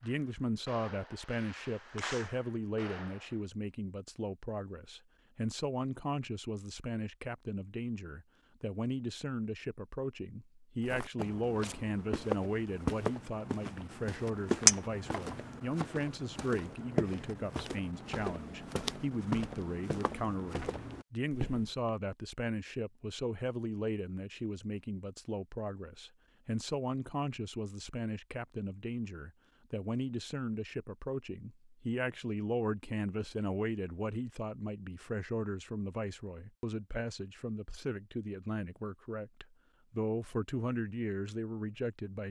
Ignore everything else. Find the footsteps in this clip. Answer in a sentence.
You can hear the footsteps from 10.8 to 21.9 s.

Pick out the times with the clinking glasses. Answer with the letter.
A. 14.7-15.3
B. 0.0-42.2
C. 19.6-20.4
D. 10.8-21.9
A.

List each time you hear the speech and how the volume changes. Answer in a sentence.
You can hear the speech from 0.0 to 42.2 s, at a steady volume.